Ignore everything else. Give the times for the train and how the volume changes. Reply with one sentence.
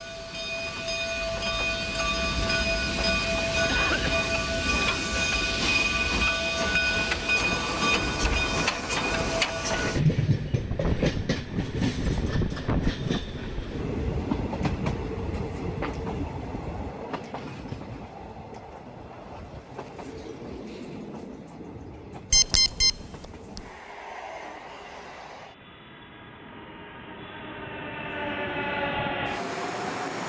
You can hear the train from 0.0 to 30.2 s, getting quieter then louder.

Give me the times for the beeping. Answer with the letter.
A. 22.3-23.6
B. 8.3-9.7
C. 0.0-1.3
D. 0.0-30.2
A.